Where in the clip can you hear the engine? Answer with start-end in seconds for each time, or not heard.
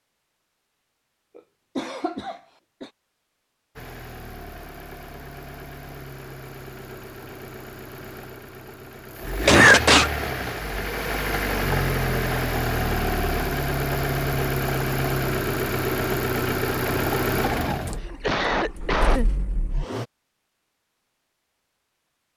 3.8-20.1.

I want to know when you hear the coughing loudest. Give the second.
10 s.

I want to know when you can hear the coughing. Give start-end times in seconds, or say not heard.
1.4-2.9, 9.4-10.1, 18.0-19.3.